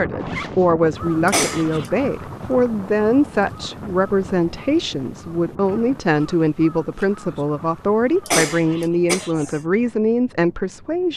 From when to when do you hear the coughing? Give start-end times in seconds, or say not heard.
1.2-1.9, 8.2-9.6.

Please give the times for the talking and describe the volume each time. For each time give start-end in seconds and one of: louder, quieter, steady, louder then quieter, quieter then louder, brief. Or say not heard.
0.0-11.1 steady.